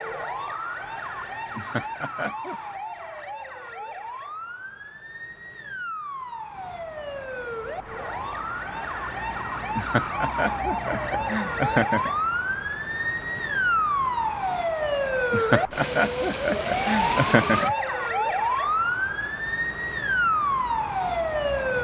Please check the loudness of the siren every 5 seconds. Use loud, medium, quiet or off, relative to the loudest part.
medium, medium, loud, loud, loud.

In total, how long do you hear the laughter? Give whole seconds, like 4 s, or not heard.
6 s.